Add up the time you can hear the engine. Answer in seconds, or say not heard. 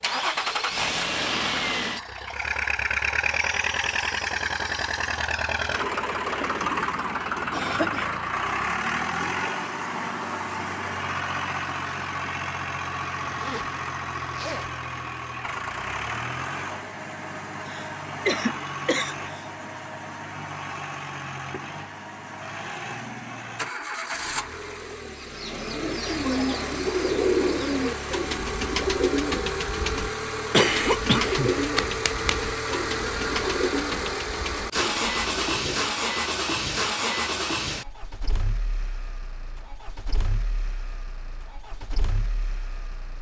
43 s.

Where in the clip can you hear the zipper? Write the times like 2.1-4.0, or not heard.
13.2-14.7.